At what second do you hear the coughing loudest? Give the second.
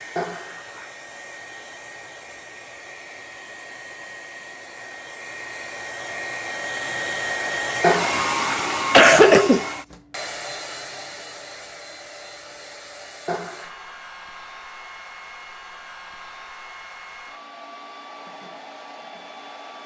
9 s.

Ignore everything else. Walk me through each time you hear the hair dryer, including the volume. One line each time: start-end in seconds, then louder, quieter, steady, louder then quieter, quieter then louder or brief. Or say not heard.
0.0-19.8 louder then quieter.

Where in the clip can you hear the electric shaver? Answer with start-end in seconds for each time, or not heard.
not heard.